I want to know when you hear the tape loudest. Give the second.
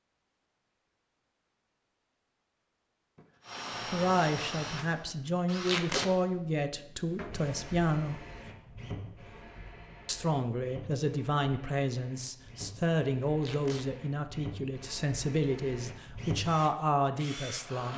6 s.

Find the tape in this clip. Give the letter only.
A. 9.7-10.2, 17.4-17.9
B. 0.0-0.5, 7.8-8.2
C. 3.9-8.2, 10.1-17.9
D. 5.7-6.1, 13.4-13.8
D.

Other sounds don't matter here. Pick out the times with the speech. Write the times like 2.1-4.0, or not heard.
3.9-8.2, 10.1-17.9.